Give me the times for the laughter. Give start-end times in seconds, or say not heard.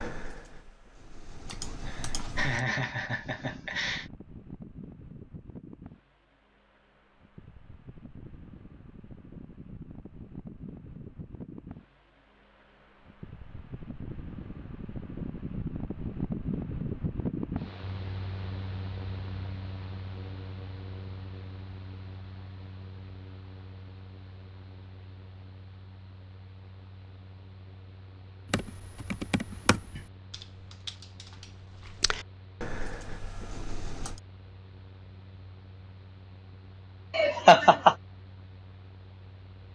1.5-4.1, 37.1-38.0.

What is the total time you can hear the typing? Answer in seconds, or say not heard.
8 s.